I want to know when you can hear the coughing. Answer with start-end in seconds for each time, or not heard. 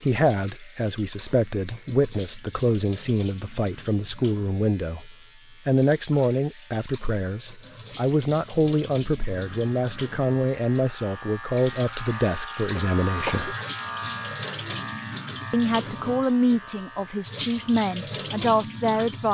12.8-13.6.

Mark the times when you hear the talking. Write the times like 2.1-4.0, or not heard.
0.0-13.6, 15.5-19.2.